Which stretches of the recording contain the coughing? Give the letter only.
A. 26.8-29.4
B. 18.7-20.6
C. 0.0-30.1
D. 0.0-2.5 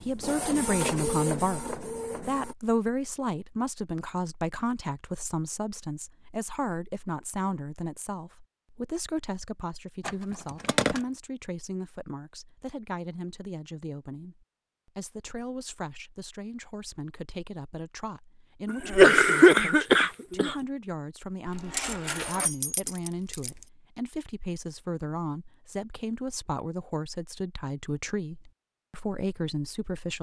B.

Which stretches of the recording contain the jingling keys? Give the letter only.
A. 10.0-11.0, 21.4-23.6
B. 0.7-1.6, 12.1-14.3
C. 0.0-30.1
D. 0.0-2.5
A.